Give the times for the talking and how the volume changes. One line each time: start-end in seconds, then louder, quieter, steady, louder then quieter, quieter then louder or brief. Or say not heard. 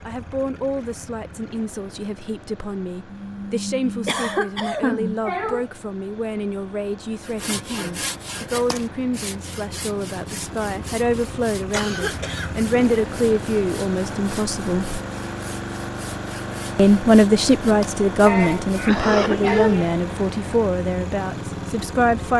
0.1-15.0 louder
16.8-22.3 quieter.